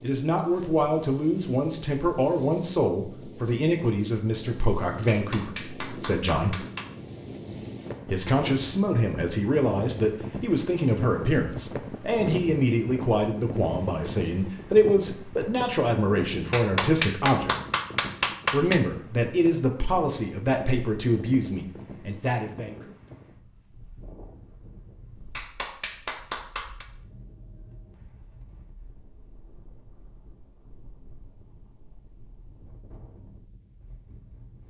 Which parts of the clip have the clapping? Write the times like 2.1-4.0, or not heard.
5.0-6.8, 16.5-18.8, 25.4-26.9.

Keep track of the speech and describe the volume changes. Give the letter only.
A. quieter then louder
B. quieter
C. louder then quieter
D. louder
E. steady
E.